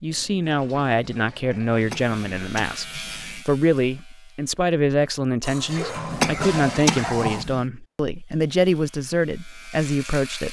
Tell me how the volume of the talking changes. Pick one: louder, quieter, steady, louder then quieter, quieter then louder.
steady.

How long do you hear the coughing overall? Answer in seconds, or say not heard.
3 s.